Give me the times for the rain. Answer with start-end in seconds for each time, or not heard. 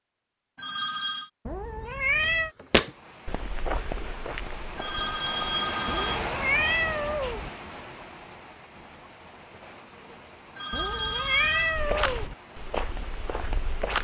2.7-13.9.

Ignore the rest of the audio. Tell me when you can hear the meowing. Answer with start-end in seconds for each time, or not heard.
1.4-2.5, 5.8-7.5, 10.7-12.3.